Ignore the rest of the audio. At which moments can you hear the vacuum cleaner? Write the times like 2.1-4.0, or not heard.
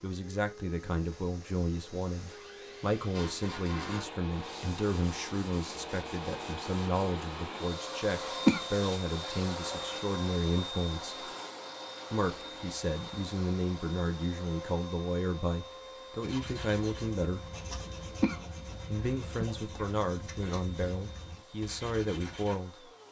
0.0-23.0.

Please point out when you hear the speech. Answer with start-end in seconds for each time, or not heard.
0.0-11.2, 12.1-17.4, 18.9-22.9.